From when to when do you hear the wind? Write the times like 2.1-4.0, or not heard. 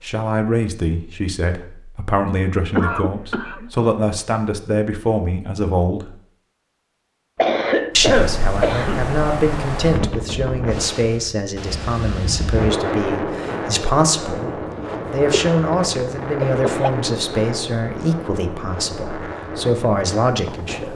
7.9-20.9.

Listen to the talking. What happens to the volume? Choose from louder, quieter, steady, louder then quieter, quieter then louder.
steady.